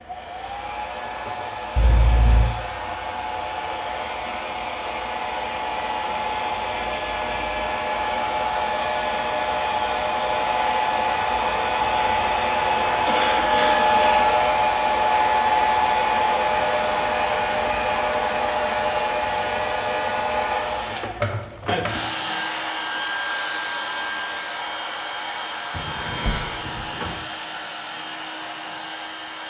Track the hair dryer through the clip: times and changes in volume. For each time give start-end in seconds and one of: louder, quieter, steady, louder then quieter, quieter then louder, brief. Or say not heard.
0.0-29.4 louder then quieter.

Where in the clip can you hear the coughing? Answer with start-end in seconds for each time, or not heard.
1.8-2.5, 13.1-14.2, 25.7-27.1.